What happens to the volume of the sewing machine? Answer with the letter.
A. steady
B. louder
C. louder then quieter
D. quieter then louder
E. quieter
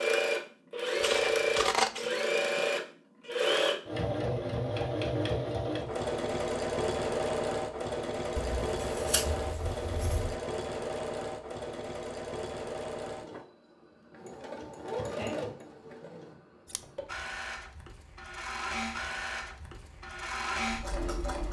E.